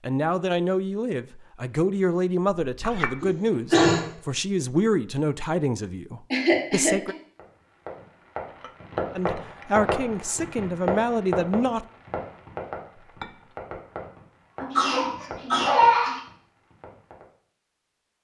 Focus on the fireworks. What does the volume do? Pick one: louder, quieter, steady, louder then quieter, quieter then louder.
quieter.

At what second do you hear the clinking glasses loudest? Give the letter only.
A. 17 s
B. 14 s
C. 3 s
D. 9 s
C.